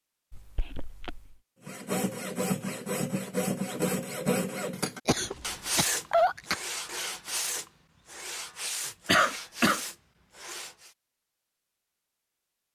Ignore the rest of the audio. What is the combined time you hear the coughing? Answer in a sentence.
The coughing can be heard for 3 seconds in total.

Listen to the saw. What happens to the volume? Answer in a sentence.
The loudness of the saw goes down.